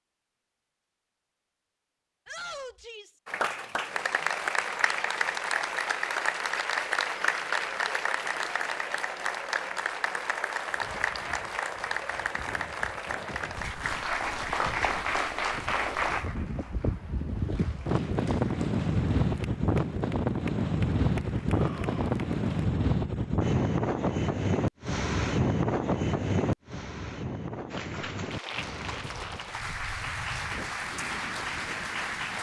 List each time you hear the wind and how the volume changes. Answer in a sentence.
The wind can be heard from 10.7 to 32.3 s, getting louder then quieter.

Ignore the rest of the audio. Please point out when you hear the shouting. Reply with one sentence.
You can hear the shouting from 2.2 to 3.2 s and from 21.5 to 22.2 s.